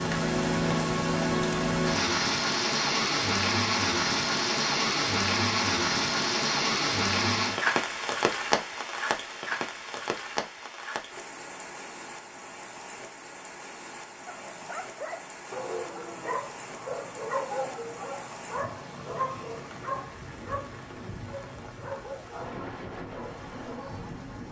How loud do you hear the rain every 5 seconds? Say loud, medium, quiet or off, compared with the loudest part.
loud, loud, quiet, quiet, quiet.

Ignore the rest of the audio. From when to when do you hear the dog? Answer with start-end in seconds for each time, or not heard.
14.2-24.1.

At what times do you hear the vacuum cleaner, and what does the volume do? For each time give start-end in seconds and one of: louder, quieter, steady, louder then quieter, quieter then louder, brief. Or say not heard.
not heard.